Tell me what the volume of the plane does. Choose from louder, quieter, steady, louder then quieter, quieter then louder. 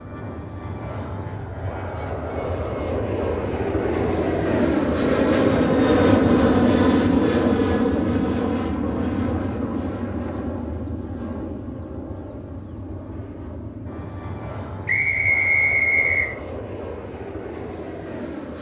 louder then quieter.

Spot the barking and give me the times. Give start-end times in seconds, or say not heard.
not heard.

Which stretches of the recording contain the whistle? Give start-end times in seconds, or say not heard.
14.8-16.4.